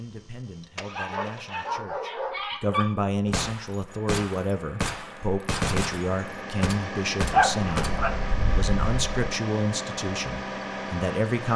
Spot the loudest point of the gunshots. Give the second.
6 s.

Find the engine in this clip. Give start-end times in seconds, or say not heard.
0.1-1.9, 3.9-11.5.